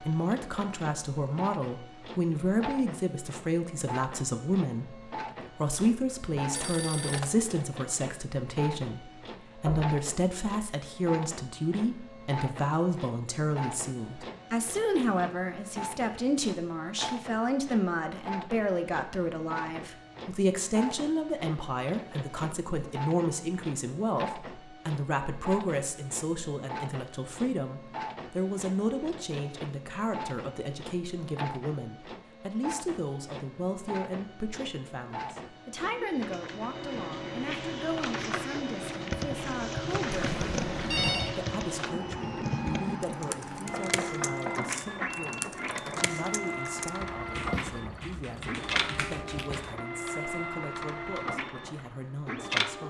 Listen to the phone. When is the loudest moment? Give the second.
41 s.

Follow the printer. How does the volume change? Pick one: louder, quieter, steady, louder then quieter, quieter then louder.
louder.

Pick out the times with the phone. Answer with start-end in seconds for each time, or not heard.
6.3-7.3, 40.1-41.3.